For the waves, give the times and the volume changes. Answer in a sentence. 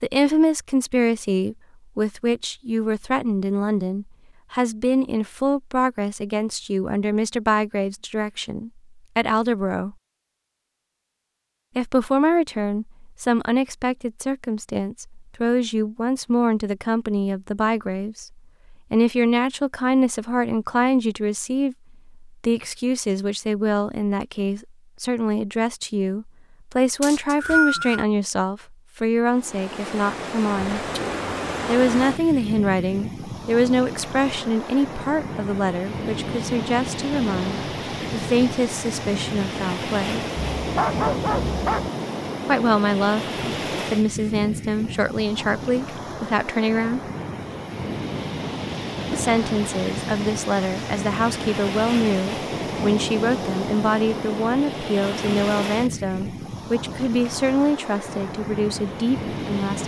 The waves can be heard from 29.3 to 59.8 s, at a steady volume.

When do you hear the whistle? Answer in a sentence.
The whistle can be heard from 27.0 to 28.1 s.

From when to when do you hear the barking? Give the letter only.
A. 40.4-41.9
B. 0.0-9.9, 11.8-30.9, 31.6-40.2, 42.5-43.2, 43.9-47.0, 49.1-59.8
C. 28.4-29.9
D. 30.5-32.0
A.